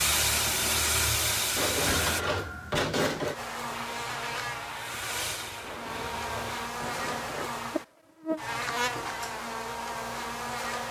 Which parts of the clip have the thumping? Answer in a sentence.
You can hear the thumping from 1.9 to 2.9 s.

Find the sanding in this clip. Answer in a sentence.
The sanding can be heard from 1.6 to 3.4 s and from 5.6 to 7.5 s.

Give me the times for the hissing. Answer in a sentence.
The hissing can be heard from 0.0 to 2.2 s and from 3.7 to 6.7 s.